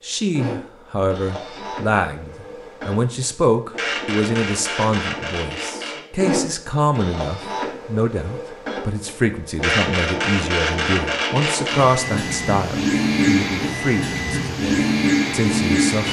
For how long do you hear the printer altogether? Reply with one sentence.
You can hear the printer for 16 seconds altogether.